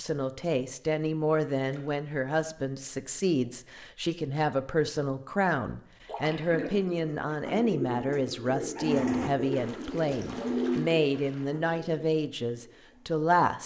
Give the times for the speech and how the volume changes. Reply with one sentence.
You can hear the speech from 0.0 to 13.6 s, at a steady volume.